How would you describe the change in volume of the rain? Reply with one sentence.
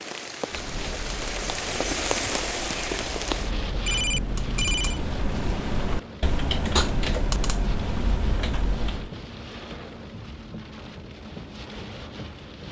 The loudness of the rain goes down.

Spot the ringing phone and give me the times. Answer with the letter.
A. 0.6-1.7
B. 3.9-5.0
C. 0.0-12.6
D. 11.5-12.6
B.